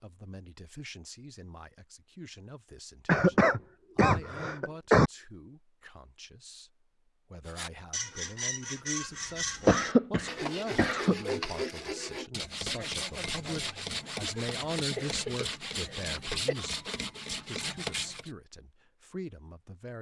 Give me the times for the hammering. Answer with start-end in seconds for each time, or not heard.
not heard.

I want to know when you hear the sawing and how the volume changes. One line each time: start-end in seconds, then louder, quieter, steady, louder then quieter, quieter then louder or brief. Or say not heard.
7.5-18.3 steady.